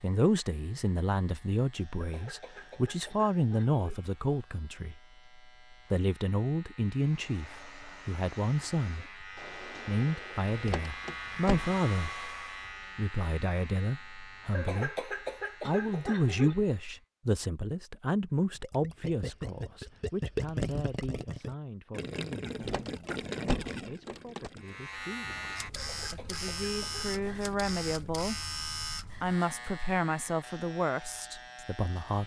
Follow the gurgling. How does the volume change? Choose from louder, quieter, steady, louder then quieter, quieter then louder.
quieter.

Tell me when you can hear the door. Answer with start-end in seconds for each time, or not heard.
10.6-11.8, 22.6-24.5.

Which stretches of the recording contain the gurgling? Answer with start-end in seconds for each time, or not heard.
18.6-28.2.